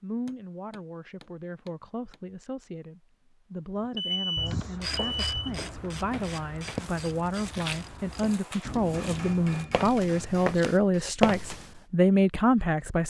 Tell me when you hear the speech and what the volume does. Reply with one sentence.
You can hear the speech from 0.0 to 13.0 s, getting louder.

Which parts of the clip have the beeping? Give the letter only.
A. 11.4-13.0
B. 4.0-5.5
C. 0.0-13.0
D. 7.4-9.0
B.